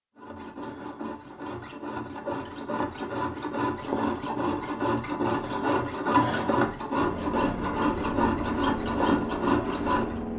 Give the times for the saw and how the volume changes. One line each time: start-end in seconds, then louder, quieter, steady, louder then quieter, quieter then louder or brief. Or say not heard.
0.1-10.2 louder.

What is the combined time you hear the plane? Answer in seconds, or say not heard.
3 s.